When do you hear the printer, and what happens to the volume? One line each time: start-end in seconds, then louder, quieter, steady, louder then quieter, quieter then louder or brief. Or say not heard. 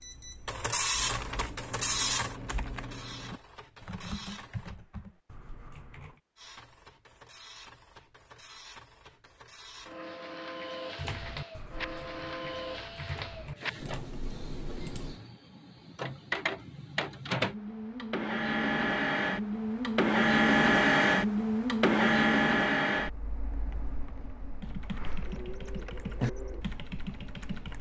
0.0-4.8 quieter
6.3-27.7 louder then quieter.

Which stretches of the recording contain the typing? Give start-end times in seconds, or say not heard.
0.9-6.2, 10.9-15.2, 24.6-27.7.